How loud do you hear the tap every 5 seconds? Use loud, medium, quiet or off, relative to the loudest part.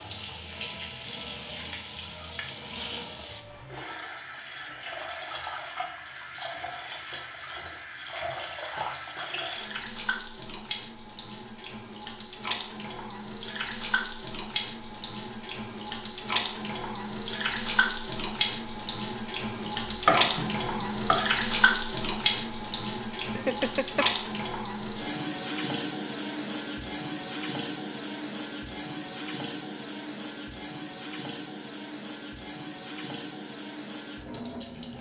medium, medium, medium, loud, loud, medium, medium.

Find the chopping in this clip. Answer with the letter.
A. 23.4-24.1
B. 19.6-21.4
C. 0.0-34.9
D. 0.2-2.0
B.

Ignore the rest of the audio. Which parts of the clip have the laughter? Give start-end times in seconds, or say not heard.
23.4-24.1.